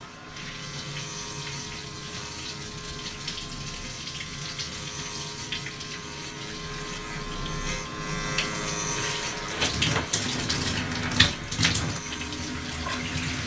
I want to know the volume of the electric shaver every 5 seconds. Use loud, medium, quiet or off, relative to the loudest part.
medium, loud, medium.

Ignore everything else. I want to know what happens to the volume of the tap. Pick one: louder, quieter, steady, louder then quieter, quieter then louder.
louder.